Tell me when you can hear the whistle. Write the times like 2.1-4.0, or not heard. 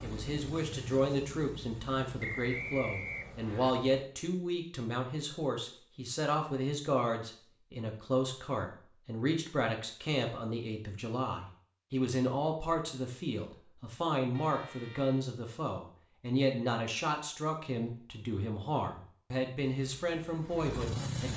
2.2-3.8.